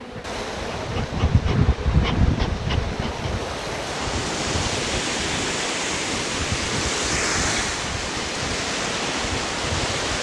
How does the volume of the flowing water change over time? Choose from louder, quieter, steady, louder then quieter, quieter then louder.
louder.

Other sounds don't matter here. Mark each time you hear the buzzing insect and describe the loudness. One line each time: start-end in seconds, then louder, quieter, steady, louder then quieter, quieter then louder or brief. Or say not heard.
0.0-10.1 quieter.